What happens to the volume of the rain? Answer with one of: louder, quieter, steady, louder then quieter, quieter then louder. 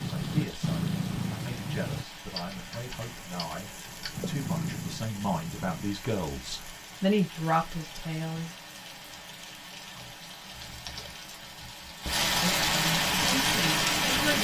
louder.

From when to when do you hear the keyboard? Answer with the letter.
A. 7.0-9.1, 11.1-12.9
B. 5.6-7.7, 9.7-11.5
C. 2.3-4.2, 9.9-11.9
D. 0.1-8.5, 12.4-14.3
C.